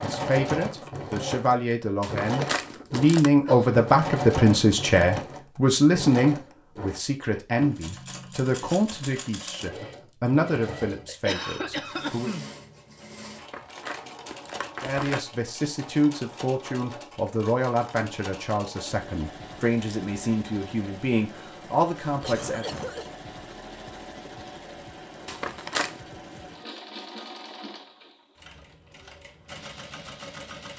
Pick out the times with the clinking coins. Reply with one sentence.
You can't hear the clinking coins here.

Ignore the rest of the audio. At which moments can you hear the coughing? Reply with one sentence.
The coughing can be heard from 2.4 to 3.7 s, from 11.1 to 12.4 s and from 22.1 to 23.1 s.